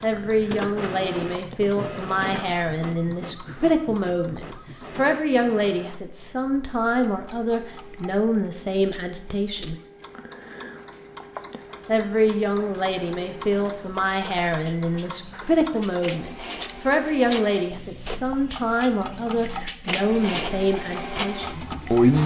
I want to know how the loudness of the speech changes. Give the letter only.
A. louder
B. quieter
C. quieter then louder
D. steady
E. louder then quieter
D.